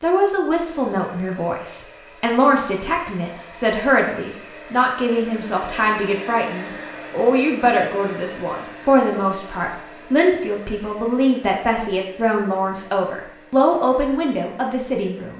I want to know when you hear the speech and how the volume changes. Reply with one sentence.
You can hear the speech from 0.0 to 15.3 s, at a steady volume.